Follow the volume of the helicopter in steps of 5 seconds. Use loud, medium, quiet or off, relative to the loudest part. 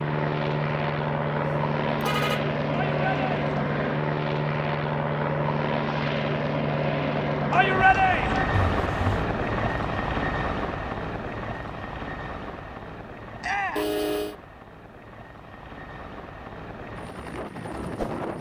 loud, loud, medium, medium.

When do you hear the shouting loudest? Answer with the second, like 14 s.
8 s.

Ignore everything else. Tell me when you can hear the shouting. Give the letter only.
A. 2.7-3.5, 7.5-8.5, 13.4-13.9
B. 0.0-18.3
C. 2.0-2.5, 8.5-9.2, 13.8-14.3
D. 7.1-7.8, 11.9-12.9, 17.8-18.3
A.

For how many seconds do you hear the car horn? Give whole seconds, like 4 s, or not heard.
2 s.